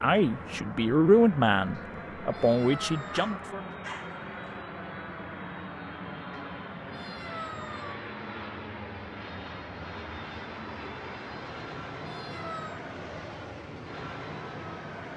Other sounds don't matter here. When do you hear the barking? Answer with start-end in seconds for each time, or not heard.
3.1-4.5.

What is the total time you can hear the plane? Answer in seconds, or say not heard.
15 s.